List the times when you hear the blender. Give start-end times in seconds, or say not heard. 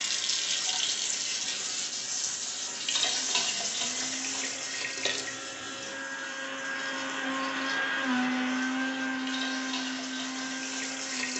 0.1-11.3.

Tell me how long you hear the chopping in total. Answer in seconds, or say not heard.
not heard.